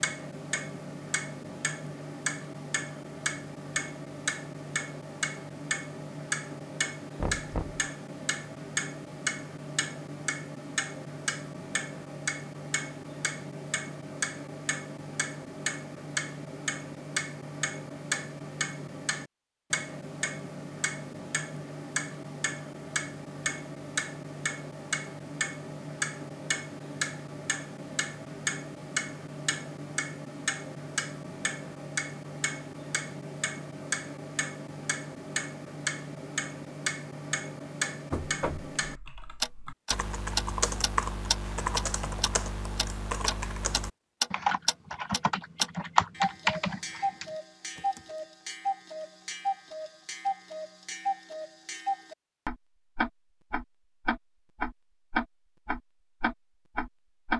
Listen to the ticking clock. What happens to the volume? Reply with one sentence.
The volume of the ticking clock stays about the same.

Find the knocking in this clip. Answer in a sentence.
You can hear the knocking from 7.2 to 7.8 s and from 38.1 to 38.7 s.